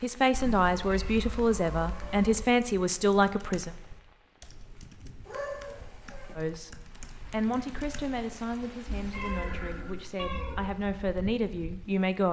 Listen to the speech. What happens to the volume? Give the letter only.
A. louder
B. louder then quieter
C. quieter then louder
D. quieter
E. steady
C.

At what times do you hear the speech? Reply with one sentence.
You can hear the speech from 0.0 to 3.7 s and from 6.3 to 12.2 s.